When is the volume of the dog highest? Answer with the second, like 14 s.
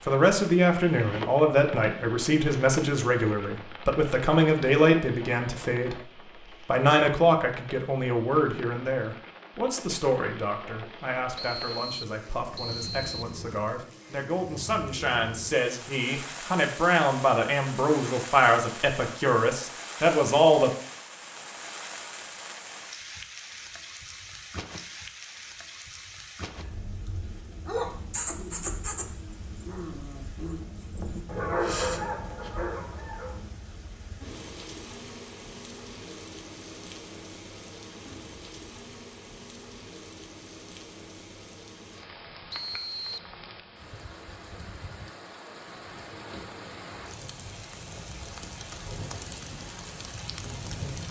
32 s.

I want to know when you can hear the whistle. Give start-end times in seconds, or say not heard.
11.3-13.3, 42.5-43.3.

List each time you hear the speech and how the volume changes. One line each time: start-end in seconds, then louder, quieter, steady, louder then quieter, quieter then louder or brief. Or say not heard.
0.0-20.7 quieter then louder.